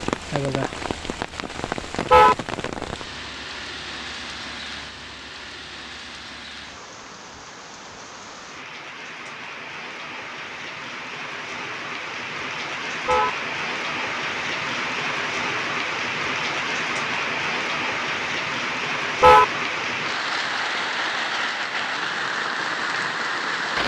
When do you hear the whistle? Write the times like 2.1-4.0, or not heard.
not heard.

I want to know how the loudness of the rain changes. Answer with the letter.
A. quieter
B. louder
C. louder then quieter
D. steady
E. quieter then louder
E.